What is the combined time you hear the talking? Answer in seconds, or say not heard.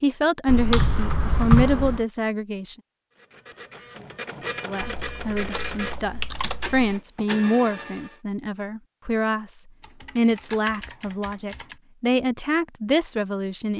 12 s.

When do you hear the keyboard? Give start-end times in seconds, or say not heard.
0.5-2.0, 5.0-7.0, 9.8-11.8.